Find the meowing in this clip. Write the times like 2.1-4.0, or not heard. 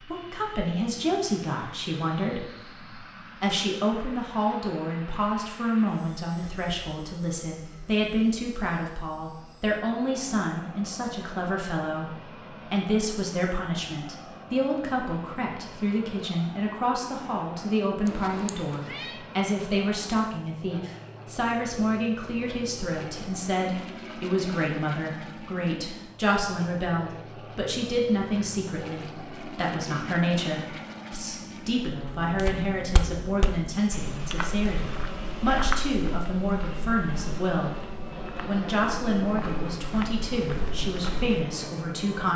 18.1-19.2.